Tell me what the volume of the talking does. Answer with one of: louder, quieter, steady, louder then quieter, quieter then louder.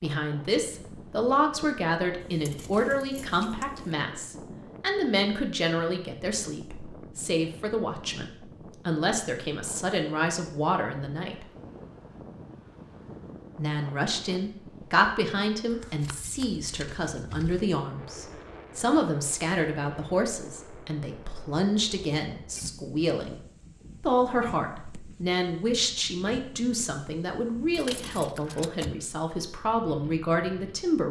steady.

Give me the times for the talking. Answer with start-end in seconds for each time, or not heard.
0.0-11.4, 13.6-23.4, 24.0-31.0.